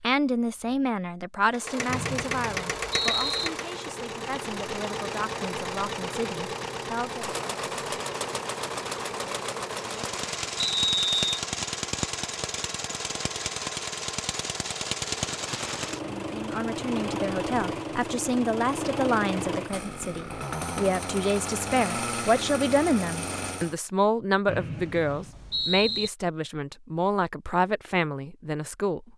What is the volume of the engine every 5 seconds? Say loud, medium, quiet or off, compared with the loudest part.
loud, loud, loud, loud, loud, off.